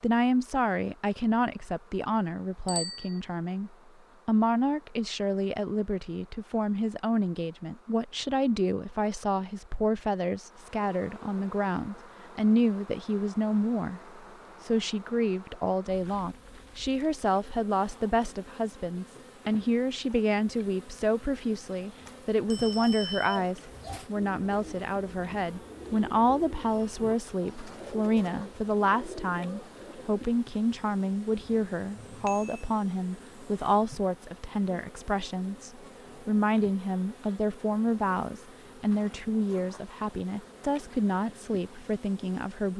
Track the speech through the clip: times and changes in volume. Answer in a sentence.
You can hear the speech from 0.0 to 42.7 s, at a steady volume.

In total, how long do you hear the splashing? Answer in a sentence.
The splashing can't be heard in this clip.